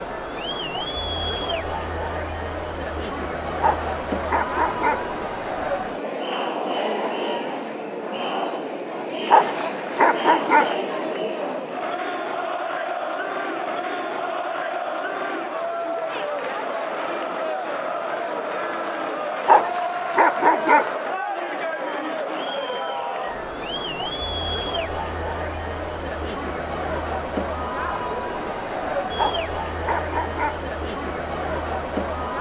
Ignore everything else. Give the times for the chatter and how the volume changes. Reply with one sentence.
The chatter can be heard from 0.0 to 32.3 s, at a steady volume.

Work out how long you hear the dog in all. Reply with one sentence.
The dog can be heard for 6 seconds in total.